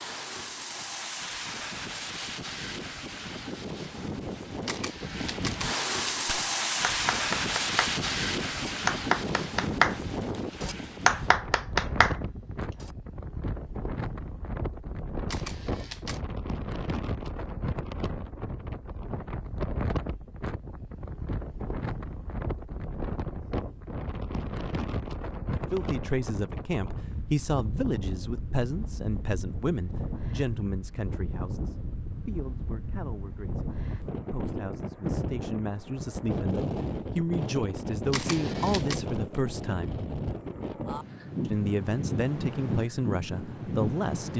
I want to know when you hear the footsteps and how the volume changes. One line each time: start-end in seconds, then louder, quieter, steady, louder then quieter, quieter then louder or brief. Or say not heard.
not heard.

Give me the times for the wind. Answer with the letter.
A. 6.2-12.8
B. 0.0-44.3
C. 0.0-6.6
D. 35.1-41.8
B.